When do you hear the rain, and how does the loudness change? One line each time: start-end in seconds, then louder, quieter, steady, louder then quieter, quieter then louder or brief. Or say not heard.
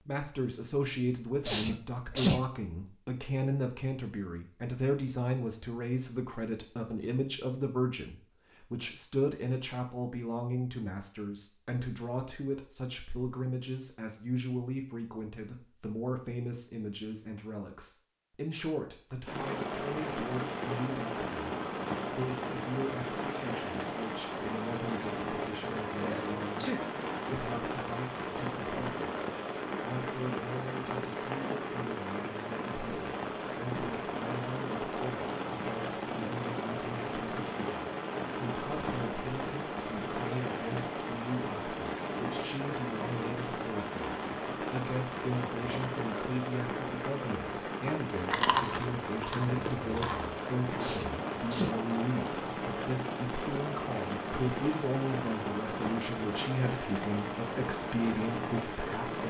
19.2-59.2 steady.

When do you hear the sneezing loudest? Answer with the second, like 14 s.
2 s.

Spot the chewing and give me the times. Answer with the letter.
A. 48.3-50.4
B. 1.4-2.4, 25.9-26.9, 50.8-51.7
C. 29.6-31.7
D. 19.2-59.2
A.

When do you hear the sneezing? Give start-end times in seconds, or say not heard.
1.4-2.4, 25.9-26.9, 50.8-51.7.